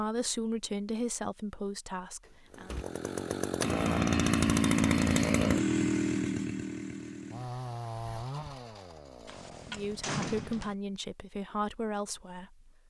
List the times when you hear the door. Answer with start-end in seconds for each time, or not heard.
2.2-2.9, 9.2-10.8.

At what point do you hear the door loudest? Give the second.
10 s.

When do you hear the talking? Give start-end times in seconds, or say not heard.
0.0-2.8, 9.7-12.8.